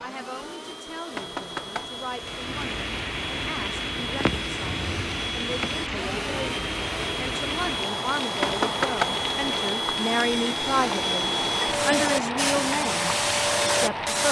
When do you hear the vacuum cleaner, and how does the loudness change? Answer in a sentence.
You can hear the vacuum cleaner from 0.0 to 14.2 s, getting louder.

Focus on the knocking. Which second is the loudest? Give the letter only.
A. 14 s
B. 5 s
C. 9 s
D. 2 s
C.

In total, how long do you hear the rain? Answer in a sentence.
You can hear the rain for 12 seconds altogether.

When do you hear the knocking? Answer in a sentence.
You can hear the knocking from 1.1 to 2.4 s and from 8.4 to 9.7 s.